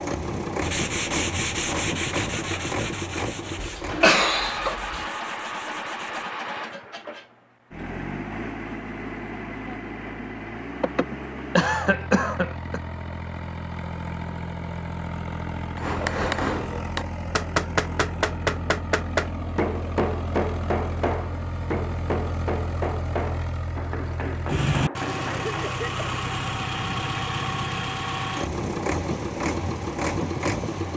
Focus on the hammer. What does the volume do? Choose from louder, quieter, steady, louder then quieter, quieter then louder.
quieter.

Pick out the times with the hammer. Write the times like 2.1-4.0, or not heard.
15.8-25.7.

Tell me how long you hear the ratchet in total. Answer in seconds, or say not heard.
not heard.